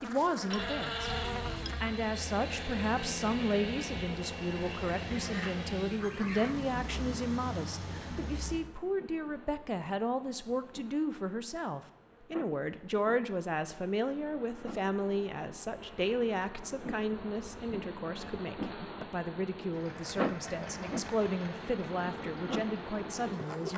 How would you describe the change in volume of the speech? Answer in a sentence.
The volume of the speech stays about the same.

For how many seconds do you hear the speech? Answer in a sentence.
The speech can be heard for 24 seconds in total.